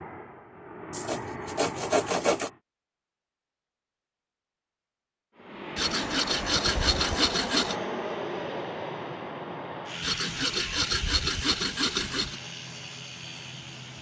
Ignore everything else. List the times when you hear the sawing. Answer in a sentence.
You can hear the sawing from 0.9 to 2.5 s, from 5.8 to 7.8 s and from 10.0 to 12.4 s.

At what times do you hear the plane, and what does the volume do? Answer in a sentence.
You can hear the plane briefly from 0.0 to 2.6 s; and from 5.3 to 13.9 s, getting quieter.